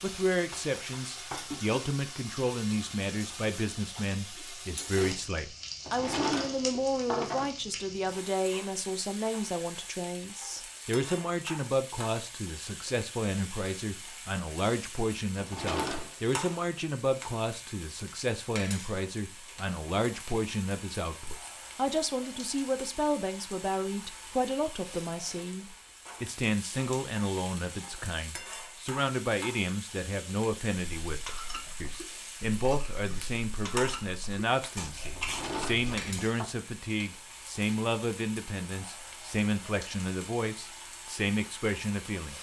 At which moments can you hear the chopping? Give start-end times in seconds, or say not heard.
not heard.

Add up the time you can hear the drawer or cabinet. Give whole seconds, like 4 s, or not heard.
4 s.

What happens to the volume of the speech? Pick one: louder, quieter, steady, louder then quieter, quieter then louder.
steady.